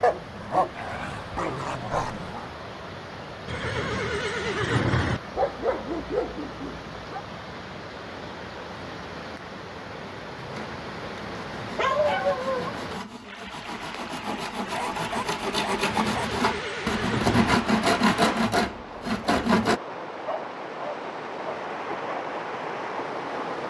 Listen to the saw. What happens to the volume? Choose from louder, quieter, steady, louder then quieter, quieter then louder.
louder.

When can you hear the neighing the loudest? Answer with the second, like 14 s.
5 s.